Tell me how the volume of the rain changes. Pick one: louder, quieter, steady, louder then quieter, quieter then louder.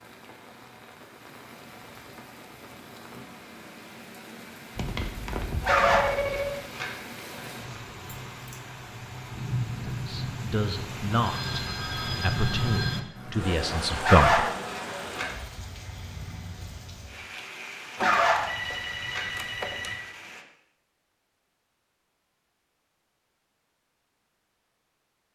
louder then quieter.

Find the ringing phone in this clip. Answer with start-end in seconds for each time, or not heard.
4.8-6.6, 11.2-13.0, 17.9-20.0.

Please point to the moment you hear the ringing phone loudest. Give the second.
6 s.